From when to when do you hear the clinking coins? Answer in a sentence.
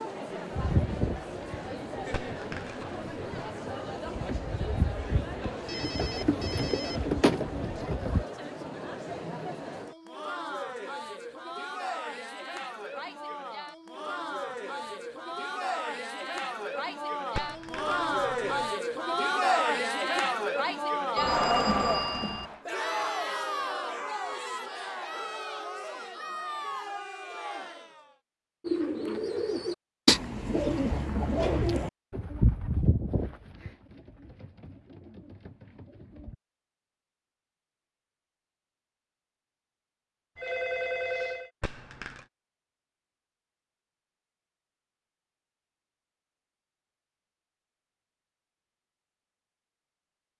You can hear the clinking coins from 2.1 to 3.5 s, from 17.4 to 18.8 s and from 41.6 to 42.2 s.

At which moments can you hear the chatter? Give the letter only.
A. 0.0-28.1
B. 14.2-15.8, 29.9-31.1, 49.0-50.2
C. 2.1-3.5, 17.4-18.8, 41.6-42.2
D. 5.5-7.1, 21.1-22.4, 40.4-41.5
A.